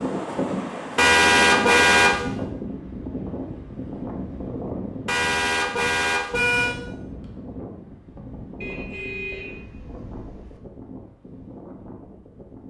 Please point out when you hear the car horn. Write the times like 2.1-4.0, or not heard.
0.9-2.1, 5.0-6.8, 8.6-10.6.